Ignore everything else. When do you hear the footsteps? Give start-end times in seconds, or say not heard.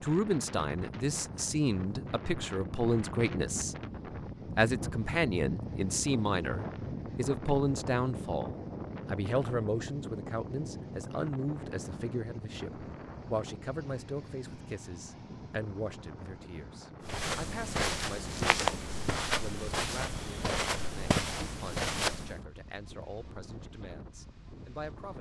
17.0-22.4.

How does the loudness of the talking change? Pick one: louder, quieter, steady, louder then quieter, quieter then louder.
quieter.